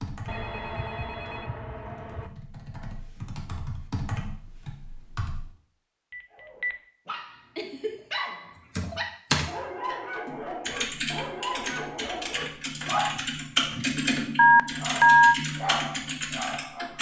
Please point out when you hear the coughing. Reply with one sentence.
The coughing can't be heard in this clip.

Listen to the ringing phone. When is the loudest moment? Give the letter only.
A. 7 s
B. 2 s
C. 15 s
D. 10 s
C.